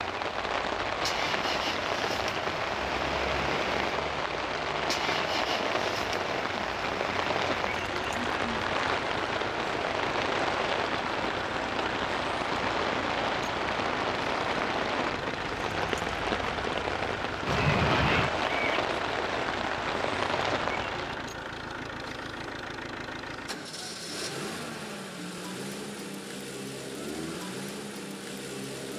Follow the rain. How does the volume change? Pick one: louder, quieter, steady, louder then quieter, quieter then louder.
steady.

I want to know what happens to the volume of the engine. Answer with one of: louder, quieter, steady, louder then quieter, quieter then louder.
steady.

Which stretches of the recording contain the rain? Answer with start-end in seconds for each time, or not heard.
0.0-21.4.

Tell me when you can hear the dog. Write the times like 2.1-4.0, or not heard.
17.4-18.8.